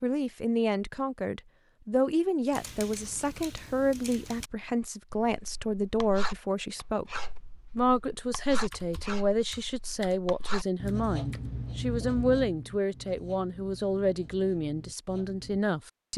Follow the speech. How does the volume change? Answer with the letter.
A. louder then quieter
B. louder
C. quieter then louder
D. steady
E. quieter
D.